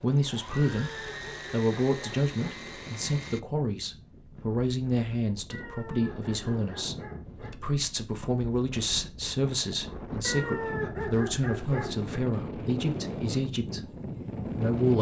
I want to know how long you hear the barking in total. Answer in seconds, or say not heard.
6 s.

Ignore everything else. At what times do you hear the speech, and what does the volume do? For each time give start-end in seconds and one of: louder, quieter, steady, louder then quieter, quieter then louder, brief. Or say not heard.
0.0-14.9 steady.